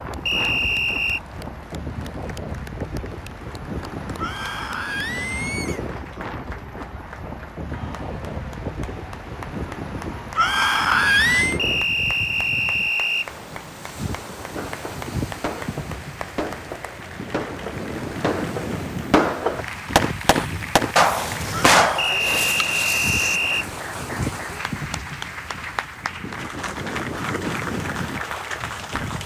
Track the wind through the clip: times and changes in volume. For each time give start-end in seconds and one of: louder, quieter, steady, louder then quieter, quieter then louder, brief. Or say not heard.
0.0-29.2 steady.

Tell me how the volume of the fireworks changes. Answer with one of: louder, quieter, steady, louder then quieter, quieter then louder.
louder.